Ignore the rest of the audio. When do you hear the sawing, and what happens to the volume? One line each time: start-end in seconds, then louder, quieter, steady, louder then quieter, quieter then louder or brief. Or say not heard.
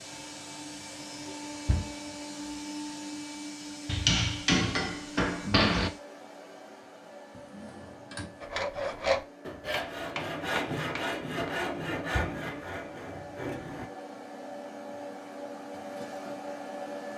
8.4-13.9 quieter.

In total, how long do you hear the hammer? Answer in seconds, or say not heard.
4 s.